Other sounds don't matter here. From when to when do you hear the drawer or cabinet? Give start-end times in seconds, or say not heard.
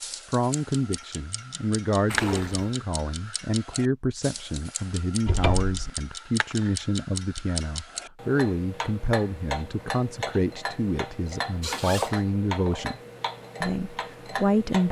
5.2-5.9.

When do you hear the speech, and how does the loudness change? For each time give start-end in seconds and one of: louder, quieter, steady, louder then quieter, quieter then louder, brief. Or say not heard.
0.1-13.0 steady
13.6-14.8 brief.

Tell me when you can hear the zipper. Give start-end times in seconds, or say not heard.
2.0-2.8, 11.6-12.2.